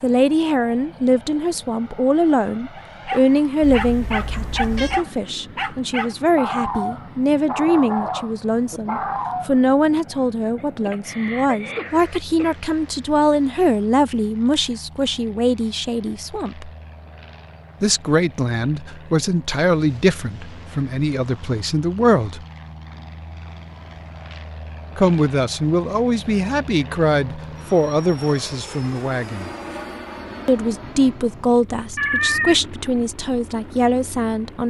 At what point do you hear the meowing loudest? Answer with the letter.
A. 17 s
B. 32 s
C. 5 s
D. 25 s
B.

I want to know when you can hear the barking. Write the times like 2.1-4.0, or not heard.
2.8-9.6.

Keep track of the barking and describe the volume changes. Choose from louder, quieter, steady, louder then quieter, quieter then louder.
steady.